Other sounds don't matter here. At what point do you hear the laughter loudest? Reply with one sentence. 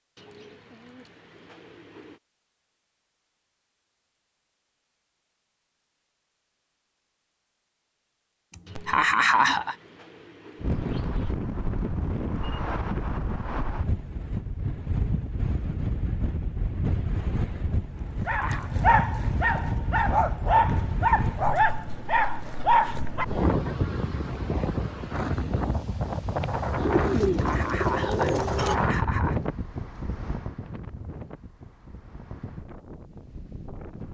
The volume of the laughter peaks at 9 seconds.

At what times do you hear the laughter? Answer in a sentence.
The laughter can be heard from 8.5 to 9.8 s, from 18.2 to 18.7 s and from 27.3 to 29.4 s.